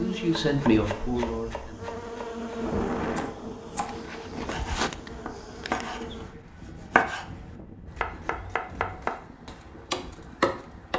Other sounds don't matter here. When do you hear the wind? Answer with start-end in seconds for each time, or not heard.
2.6-10.9.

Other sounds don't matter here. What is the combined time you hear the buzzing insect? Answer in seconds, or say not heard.
6 s.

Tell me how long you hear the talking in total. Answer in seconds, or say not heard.
3 s.